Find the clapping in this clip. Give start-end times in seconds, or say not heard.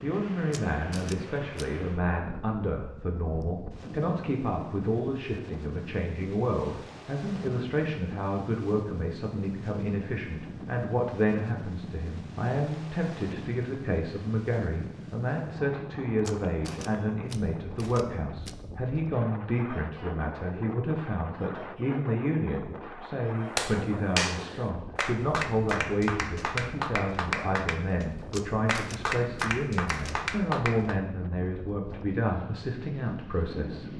23.6-30.9.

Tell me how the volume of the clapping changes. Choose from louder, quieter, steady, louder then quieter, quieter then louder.
steady.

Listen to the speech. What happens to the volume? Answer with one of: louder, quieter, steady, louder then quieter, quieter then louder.
steady.